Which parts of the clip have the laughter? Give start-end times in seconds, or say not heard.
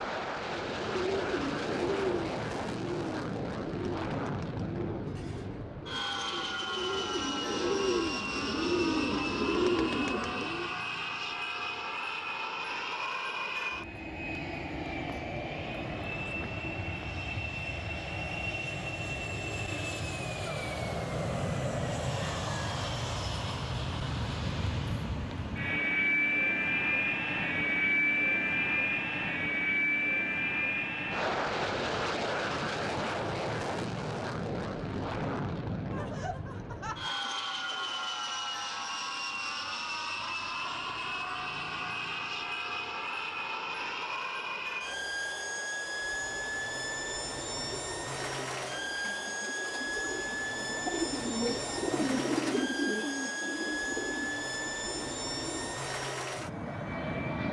35.9-38.0.